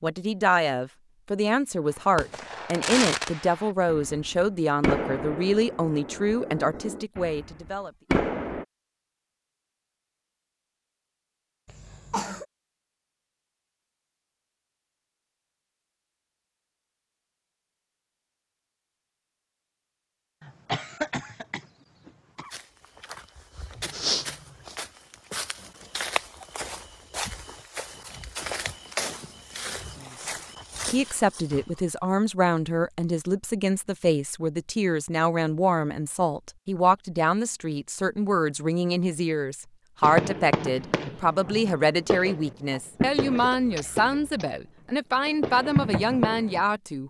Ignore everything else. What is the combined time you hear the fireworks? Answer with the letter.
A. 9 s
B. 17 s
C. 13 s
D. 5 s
C.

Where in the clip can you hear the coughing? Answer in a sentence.
The coughing can be heard from 11.7 to 12.4 s, from 20.4 to 22.5 s and from 43.4 to 44.5 s.